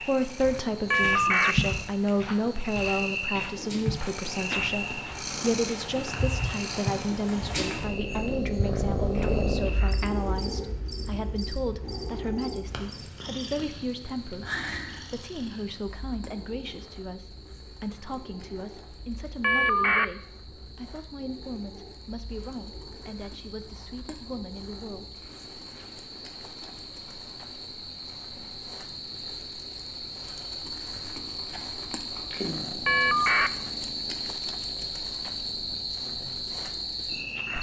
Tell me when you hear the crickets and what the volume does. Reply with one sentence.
The crickets can be heard from 0.0 to 37.5 s, getting quieter then louder.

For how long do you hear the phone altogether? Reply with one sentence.
The phone can be heard for 2 seconds in total.